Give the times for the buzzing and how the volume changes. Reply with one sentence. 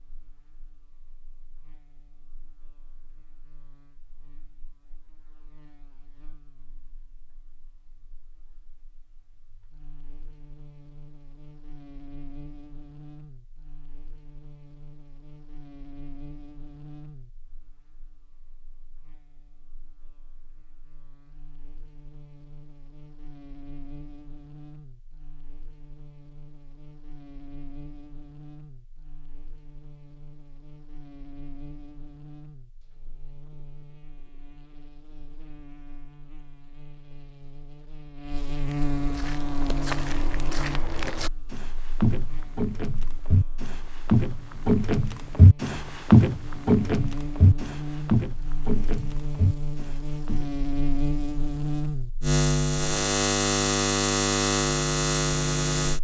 The buzzing can be heard from 0.0 to 56.0 s, getting louder.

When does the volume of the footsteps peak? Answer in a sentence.
The volume of the footsteps peaks at 46 seconds.